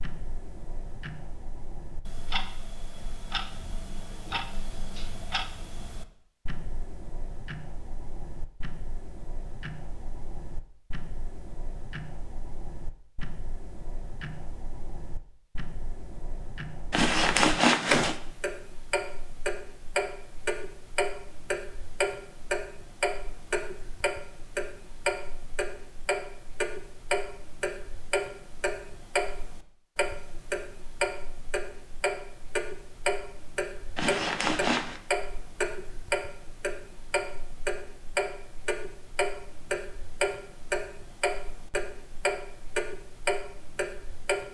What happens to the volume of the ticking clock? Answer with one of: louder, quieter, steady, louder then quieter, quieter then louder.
louder.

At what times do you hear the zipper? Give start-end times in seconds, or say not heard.
16.9-18.1, 34.0-35.0.